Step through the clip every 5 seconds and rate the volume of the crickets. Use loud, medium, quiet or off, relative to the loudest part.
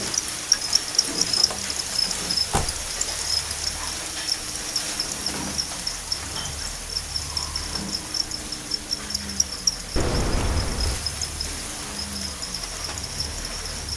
loud, loud, medium.